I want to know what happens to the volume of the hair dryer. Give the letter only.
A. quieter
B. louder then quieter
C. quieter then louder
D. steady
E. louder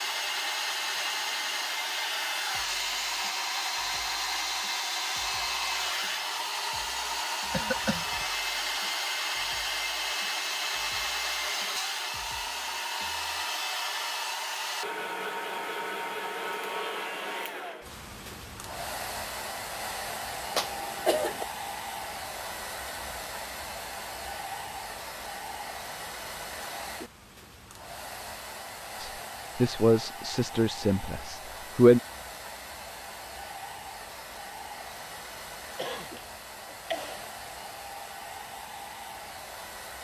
A.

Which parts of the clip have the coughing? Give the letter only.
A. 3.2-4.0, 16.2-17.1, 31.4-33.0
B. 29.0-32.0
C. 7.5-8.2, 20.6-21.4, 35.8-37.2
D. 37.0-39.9
C.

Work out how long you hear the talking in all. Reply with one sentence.
You can hear the talking for 3 seconds altogether.